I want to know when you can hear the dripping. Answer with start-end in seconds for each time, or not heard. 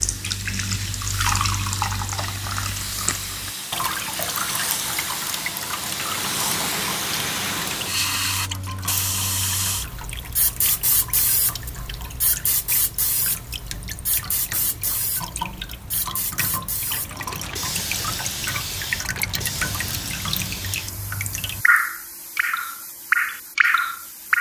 0.0-24.3.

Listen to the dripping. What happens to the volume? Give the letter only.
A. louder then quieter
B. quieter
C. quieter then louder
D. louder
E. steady
C.